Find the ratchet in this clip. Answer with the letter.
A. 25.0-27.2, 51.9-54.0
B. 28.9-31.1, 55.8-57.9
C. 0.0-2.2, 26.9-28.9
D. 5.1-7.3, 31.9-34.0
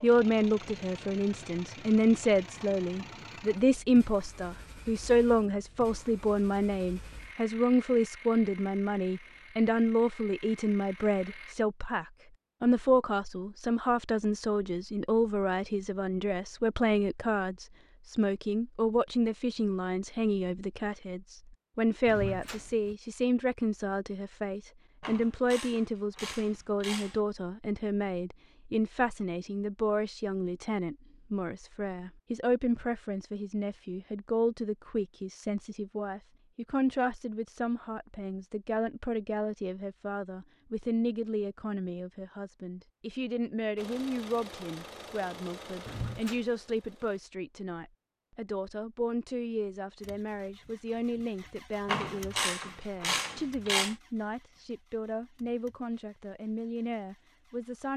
A.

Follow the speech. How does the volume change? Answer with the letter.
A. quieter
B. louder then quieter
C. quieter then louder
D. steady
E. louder
A.